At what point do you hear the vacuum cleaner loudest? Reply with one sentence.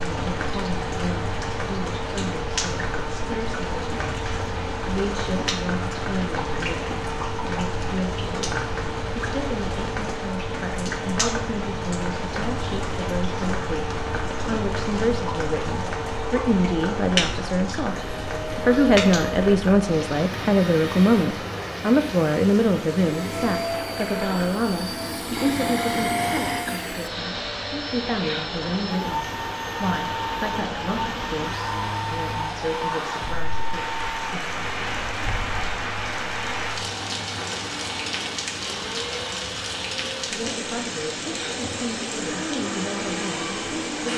The loudest moment of the vacuum cleaner is at 26 seconds.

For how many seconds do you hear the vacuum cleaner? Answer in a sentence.
You can hear the vacuum cleaner for 44 seconds altogether.